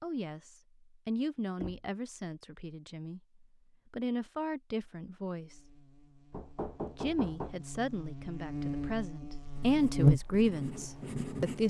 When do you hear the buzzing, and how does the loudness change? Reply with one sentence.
The buzzing can be heard from 5.3 to 11.6 s, getting louder then quieter.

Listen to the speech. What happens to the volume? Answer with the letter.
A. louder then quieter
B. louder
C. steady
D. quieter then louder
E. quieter
B.